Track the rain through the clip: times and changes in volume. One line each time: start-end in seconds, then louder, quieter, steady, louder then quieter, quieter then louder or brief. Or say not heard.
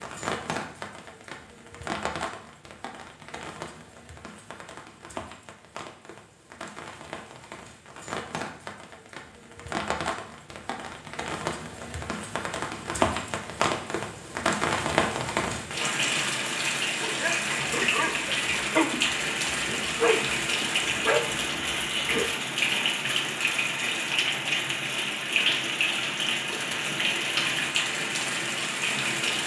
0.0-29.4 louder.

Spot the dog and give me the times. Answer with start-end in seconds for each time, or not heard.
17.0-22.3.